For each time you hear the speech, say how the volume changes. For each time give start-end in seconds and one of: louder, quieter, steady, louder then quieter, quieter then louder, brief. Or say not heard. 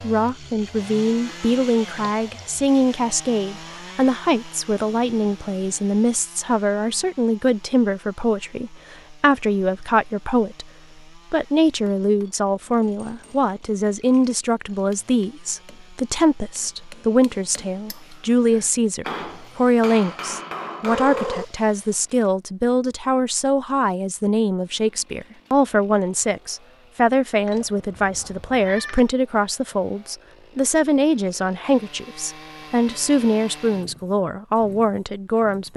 0.0-10.7 steady
11.3-35.7 steady.